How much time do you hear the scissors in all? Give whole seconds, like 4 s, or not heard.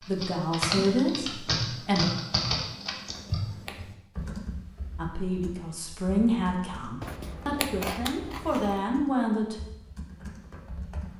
3 s.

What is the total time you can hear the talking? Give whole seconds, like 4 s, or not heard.
7 s.